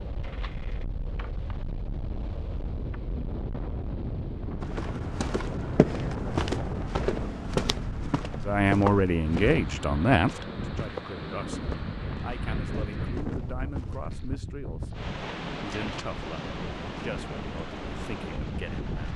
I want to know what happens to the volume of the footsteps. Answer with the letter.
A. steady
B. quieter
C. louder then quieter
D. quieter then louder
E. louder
B.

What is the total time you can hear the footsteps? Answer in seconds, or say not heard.
10 s.